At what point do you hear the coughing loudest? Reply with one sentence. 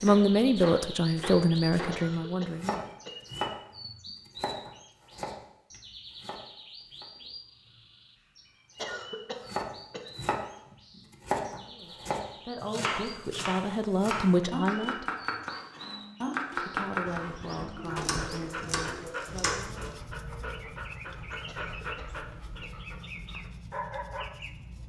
The volume of the coughing peaks at 9 seconds.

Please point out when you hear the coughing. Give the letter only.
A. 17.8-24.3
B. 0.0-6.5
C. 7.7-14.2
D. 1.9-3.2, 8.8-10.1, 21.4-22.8
D.